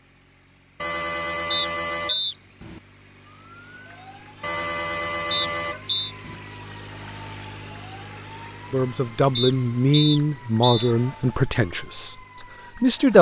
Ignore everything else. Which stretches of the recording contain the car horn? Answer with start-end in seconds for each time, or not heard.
0.8-2.8, 4.4-6.4, 10.6-11.3.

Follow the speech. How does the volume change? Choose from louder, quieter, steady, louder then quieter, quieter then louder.
quieter.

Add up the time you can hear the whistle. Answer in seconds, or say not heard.
3 s.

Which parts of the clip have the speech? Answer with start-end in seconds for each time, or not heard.
8.7-13.1.